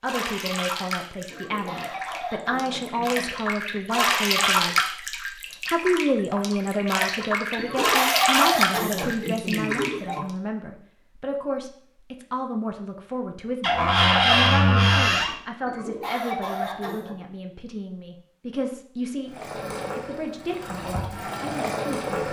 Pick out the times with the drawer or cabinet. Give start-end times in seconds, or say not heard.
13.6-15.3.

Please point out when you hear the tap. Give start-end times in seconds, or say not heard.
0.0-10.2, 19.3-22.2.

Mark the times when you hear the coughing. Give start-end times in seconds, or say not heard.
1.3-3.3, 7.5-10.2, 15.7-17.1.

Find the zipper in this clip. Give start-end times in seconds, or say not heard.
not heard.